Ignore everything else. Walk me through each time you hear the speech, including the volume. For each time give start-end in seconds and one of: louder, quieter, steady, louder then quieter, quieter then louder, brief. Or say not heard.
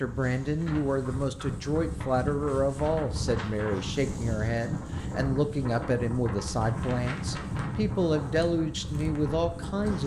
0.0-10.0 steady.